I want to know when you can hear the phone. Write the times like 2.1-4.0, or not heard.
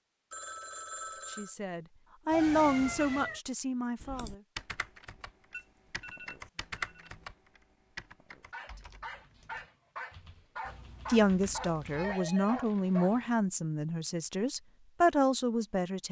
0.3-1.6, 5.5-7.2, 11.2-12.7.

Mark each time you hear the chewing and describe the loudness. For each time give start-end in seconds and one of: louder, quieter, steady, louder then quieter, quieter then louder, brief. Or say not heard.
not heard.